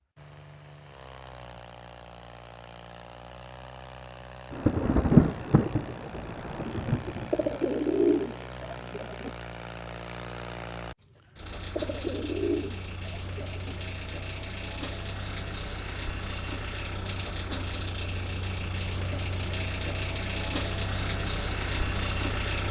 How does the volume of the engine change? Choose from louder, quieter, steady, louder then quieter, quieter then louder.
louder.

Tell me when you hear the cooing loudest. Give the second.
8 s.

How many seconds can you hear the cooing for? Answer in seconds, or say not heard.
4 s.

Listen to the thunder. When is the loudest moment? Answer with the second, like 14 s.
5 s.